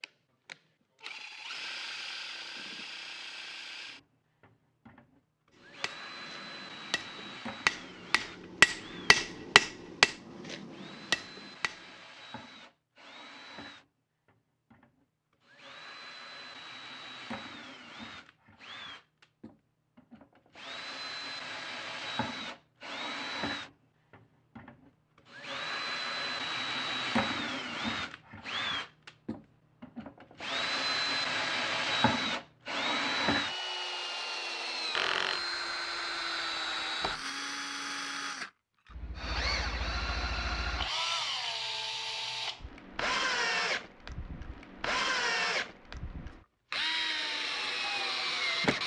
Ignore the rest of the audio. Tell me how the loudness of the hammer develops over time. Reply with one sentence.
The volume of the hammer goes up, then down.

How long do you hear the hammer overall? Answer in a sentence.
The hammer can be heard for 6 seconds in total.